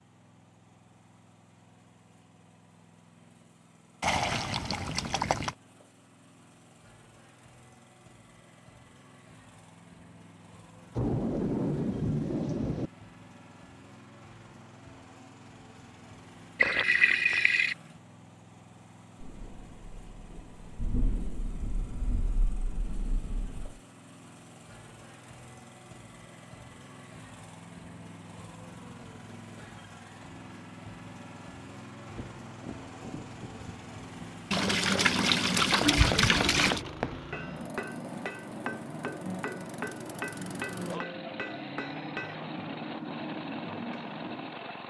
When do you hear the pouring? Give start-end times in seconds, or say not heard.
4.0-5.5, 16.6-17.8, 34.5-36.8.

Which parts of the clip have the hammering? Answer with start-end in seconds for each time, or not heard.
35.6-44.6.